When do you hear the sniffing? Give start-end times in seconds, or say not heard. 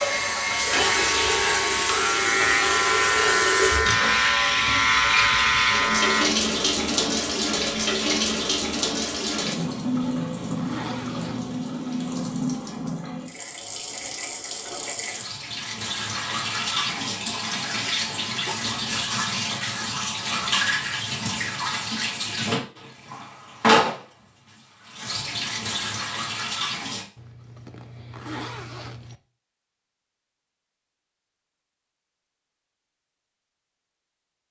not heard.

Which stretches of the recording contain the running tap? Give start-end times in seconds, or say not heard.
0.0-27.1.